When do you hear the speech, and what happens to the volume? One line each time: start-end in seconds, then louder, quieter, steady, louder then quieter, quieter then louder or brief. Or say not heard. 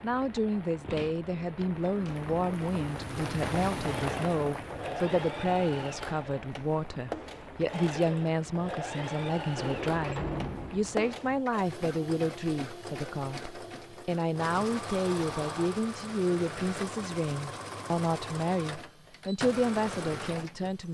0.0-20.8 steady.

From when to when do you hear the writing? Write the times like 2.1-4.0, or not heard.
not heard.